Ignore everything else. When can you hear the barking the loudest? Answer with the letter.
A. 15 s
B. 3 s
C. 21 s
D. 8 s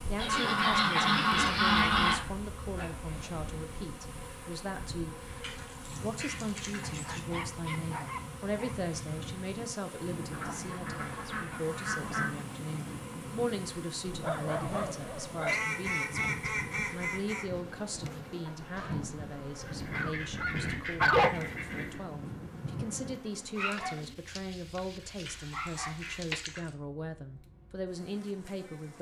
C.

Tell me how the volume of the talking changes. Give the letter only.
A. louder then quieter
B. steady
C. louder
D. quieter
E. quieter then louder
B.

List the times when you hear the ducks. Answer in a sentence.
You can hear the ducks from 0.1 to 2.1 s, from 5.4 to 7.2 s, from 10.3 to 12.4 s, from 15.4 to 17.4 s, from 19.6 to 22.0 s and from 25.2 to 26.7 s.